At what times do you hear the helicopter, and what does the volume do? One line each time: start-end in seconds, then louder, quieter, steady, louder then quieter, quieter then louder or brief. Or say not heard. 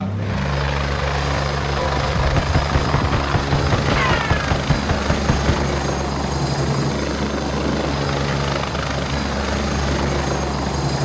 0.0-11.0 steady.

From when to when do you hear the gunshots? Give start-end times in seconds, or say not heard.
1.8-5.7.